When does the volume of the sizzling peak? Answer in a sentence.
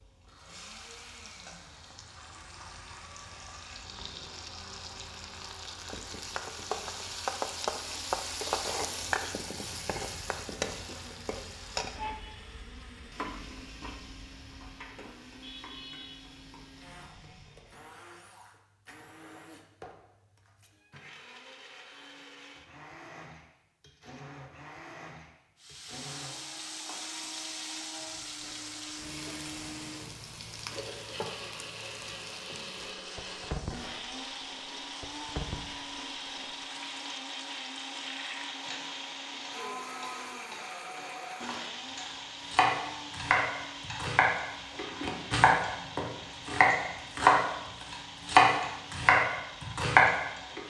The volume of the sizzling peaks at 9 seconds.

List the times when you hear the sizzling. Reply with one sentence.
You can hear the sizzling from 0.0 to 17.9 s and from 25.6 to 50.6 s.